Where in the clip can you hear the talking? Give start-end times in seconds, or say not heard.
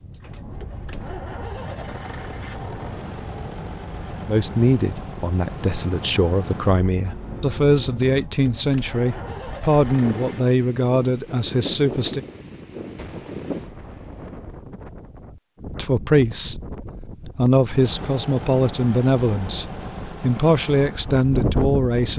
4.2-12.2, 15.8-16.6, 17.4-22.1.